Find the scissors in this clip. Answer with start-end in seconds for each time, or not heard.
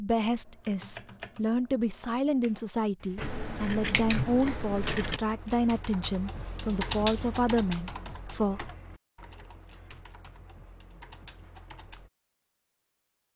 3.1-5.2.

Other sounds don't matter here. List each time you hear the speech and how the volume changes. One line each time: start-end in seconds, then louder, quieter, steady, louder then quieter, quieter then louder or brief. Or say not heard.
0.0-8.7 steady.